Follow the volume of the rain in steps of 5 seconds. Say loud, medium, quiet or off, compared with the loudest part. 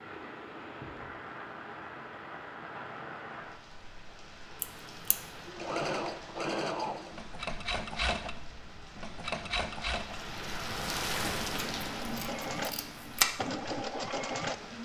medium, medium, loud.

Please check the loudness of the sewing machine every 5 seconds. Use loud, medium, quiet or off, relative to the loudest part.
off, loud, loud.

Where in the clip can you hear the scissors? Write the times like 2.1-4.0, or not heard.
4.6-5.2, 11.2-13.2.